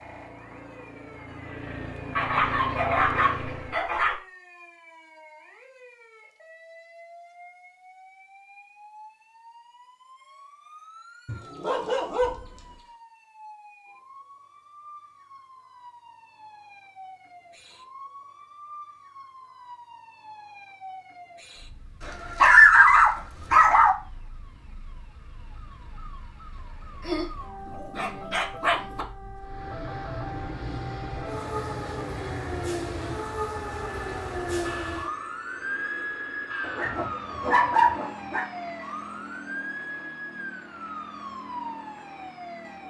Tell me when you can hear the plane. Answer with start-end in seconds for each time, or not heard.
0.0-3.8, 29.4-42.8.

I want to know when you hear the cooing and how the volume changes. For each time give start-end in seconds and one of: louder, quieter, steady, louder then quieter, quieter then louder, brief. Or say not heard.
not heard.